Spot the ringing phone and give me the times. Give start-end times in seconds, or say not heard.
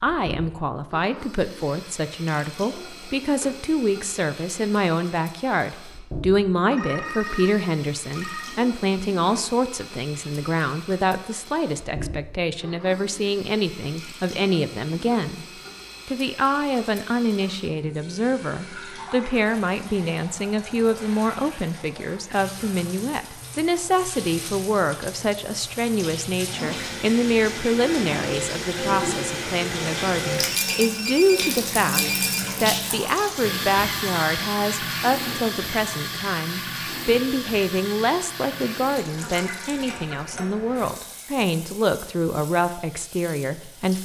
6.7-8.6, 30.5-32.4.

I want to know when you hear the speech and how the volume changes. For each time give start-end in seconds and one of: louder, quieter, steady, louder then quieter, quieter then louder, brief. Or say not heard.
0.0-44.0 steady.